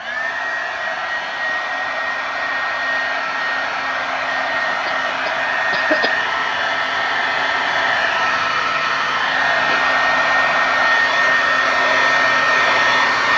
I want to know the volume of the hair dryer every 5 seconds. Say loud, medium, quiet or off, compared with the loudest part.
medium, loud, loud.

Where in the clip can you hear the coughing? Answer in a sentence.
The coughing can be heard from 4.7 to 6.1 s.